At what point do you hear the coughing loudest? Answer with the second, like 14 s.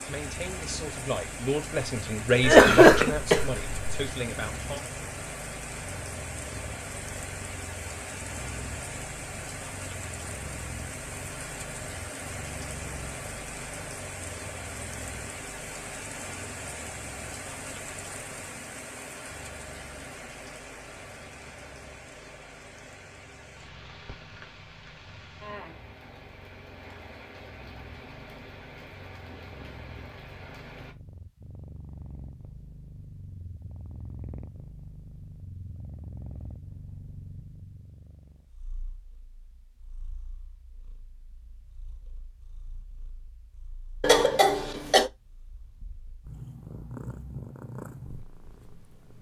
3 s.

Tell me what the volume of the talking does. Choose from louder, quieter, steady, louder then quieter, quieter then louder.
louder then quieter.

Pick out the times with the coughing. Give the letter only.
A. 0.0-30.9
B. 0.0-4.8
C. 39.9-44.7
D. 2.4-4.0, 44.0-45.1
D.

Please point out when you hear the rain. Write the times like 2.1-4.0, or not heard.
0.0-30.9.